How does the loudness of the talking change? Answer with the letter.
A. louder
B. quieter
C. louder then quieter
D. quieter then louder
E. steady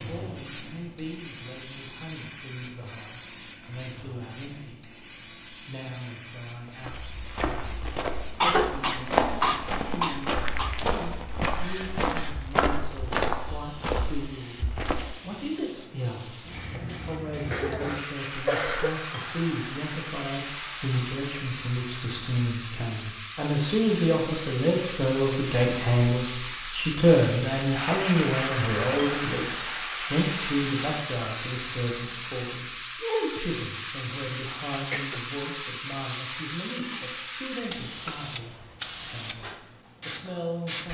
C.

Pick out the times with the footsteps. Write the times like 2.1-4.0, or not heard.
6.8-15.2.